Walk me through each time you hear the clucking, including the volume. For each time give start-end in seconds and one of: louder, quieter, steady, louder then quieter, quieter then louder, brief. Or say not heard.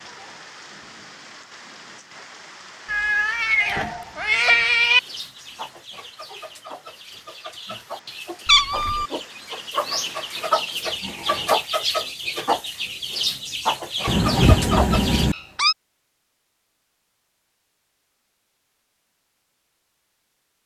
4.8-15.3 louder.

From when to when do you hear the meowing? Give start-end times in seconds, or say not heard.
2.9-5.0, 8.4-9.1, 14.1-15.8.